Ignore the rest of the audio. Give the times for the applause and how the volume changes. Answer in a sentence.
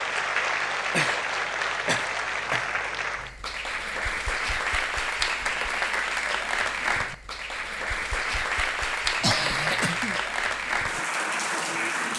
The applause can be heard from 0.0 to 12.1 s, at a steady volume.